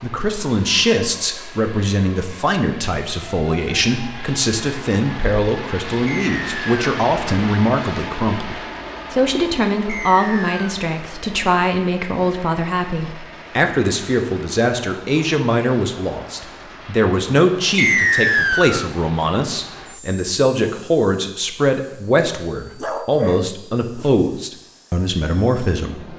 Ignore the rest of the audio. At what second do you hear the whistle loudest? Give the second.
18 s.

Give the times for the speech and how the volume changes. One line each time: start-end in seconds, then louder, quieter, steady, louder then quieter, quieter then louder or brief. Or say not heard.
0.0-26.1 steady.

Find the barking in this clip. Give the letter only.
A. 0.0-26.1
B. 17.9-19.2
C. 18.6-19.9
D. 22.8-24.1
D.